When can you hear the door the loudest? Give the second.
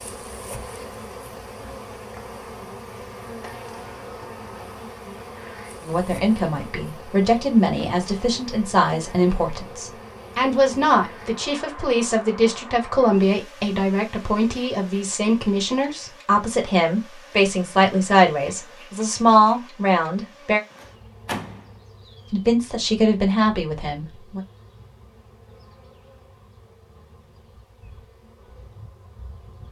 21 s.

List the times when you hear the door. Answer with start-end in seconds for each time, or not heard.
3.4-4.9, 20.7-21.8.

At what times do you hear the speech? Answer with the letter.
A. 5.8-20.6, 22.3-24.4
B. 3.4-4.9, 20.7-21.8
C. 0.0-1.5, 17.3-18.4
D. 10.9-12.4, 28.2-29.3
A.